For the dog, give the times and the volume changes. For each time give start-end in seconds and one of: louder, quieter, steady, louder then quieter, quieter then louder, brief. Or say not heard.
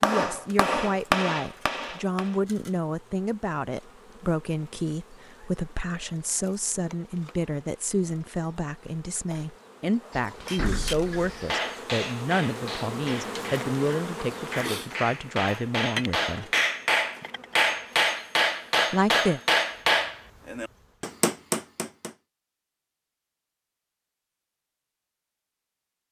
not heard.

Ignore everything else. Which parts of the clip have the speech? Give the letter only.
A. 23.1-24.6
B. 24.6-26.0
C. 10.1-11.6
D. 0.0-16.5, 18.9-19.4
D.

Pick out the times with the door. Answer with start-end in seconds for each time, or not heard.
10.1-11.6.